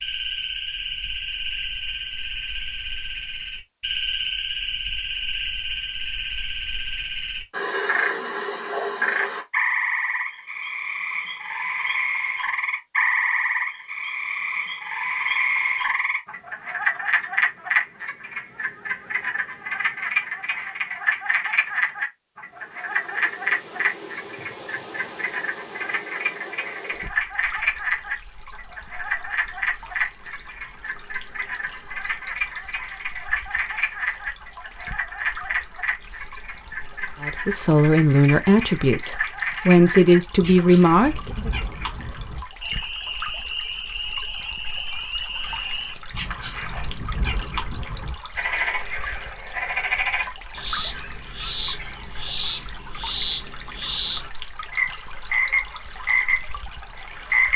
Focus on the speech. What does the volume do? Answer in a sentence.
The volume of the speech goes down, then up.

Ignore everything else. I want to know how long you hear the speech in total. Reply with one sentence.
The speech can be heard for 4 seconds in total.